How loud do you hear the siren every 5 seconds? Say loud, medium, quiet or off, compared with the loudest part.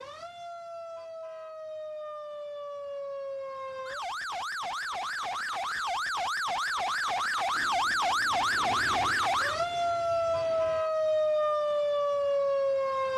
medium, loud, loud.